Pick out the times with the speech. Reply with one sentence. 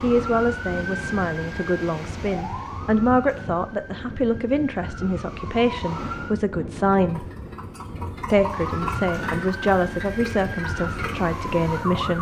You can hear the speech from 0.0 to 7.2 s and from 8.3 to 12.1 s.